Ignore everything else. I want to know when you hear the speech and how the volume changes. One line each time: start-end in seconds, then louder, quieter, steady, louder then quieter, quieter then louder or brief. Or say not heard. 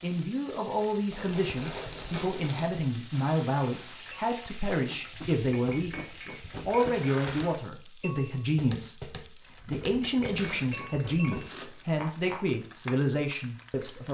0.0-14.0 steady.